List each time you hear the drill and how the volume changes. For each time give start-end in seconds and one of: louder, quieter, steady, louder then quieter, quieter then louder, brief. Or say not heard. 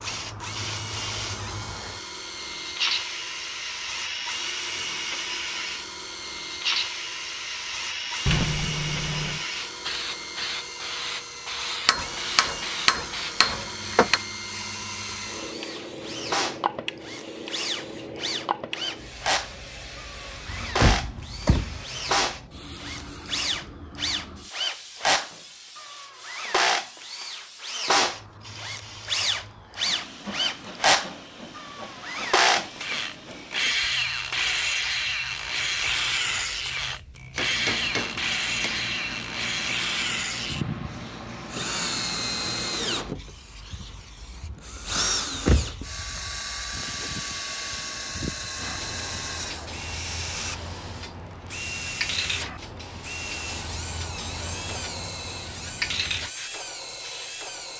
0.0-57.7 louder then quieter.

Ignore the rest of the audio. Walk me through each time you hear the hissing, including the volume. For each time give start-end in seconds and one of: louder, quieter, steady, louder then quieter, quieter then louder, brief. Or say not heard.
0.0-57.7 quieter then louder.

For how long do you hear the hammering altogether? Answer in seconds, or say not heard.
4 s.